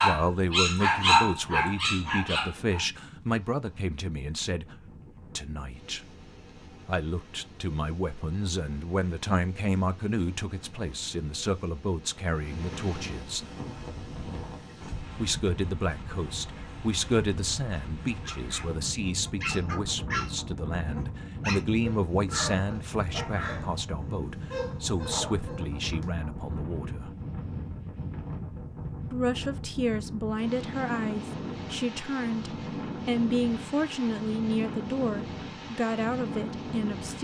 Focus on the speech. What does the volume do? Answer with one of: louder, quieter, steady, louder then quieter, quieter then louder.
steady.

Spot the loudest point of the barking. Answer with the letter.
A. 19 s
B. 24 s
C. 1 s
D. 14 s
C.